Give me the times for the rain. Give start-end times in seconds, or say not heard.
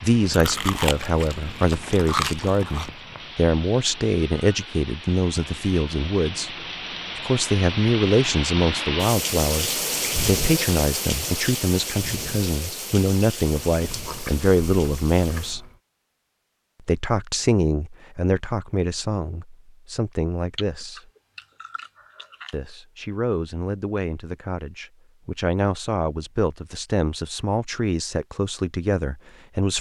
0.0-15.6.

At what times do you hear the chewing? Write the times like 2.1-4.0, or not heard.
0.3-2.9, 13.7-15.8, 20.6-22.6.